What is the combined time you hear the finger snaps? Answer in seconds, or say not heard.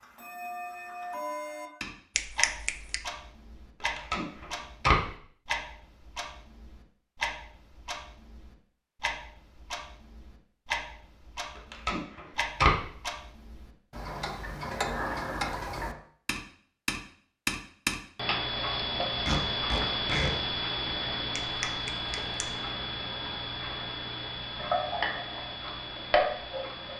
2 s.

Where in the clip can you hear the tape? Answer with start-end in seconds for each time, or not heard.
3.8-5.0, 11.6-12.8, 19.2-20.3.